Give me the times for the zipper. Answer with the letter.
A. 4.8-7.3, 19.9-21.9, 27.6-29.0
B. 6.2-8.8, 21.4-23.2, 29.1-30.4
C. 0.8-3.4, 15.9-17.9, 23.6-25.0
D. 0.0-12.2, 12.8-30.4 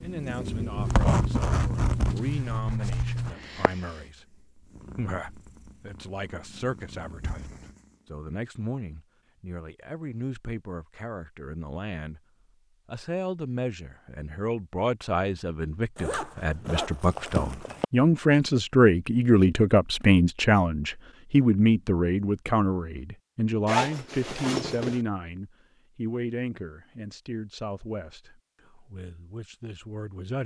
C.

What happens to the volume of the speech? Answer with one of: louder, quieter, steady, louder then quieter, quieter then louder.
louder then quieter.